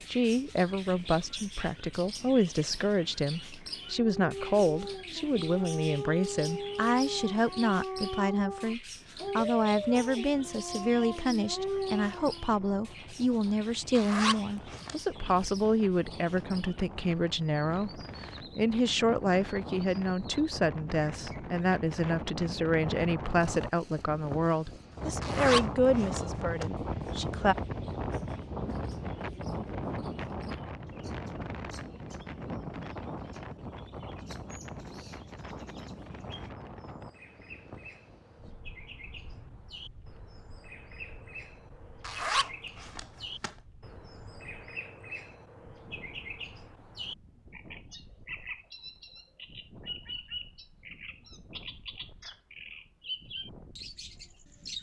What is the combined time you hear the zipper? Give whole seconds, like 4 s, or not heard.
4 s.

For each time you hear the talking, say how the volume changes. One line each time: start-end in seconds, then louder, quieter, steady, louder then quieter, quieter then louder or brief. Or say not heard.
0.1-27.6 steady.